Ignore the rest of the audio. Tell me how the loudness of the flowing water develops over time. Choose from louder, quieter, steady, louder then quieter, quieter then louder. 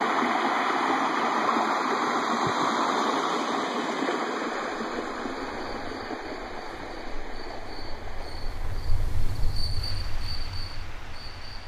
quieter.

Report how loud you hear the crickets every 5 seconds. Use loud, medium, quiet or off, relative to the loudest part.
off, loud, loud.